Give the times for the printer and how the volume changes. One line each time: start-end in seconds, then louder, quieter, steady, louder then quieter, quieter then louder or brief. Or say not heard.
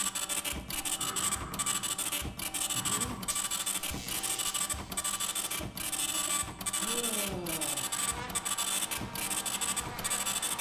0.0-10.5 steady.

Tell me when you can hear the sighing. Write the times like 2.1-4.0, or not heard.
0.9-3.3, 6.8-7.9.